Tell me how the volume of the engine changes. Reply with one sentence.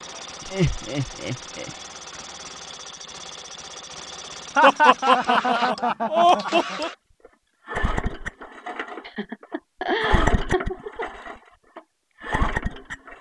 The volume of the engine goes up.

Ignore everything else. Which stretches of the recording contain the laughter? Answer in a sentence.
You can hear the laughter from 0.4 to 1.7 s, from 4.5 to 6.9 s and from 9.1 to 11.1 s.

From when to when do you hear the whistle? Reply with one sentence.
You can't hear the whistle here.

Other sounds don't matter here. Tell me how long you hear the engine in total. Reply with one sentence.
You can hear the engine for 13 seconds altogether.